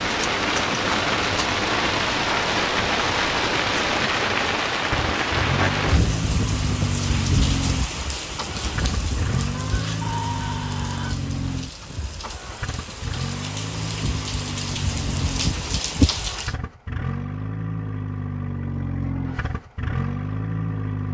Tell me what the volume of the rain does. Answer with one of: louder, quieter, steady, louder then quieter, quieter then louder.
quieter then louder.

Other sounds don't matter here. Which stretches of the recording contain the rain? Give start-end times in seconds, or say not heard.
0.0-16.6.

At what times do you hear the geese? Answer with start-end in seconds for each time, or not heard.
9.5-11.2.